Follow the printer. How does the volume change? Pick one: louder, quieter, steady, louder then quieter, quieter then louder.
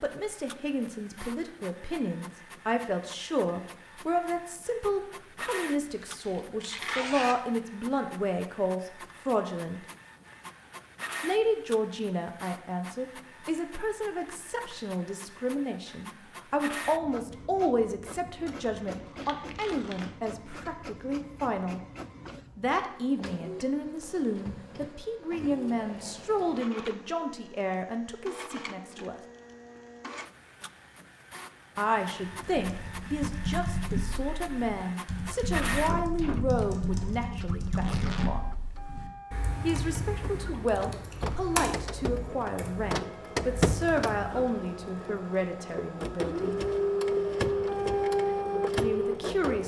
louder.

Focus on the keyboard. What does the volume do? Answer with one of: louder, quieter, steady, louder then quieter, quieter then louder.
quieter.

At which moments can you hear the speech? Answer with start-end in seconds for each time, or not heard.
0.0-9.8, 11.2-21.8, 22.6-29.1, 31.8-38.4, 39.6-46.6, 48.7-49.6.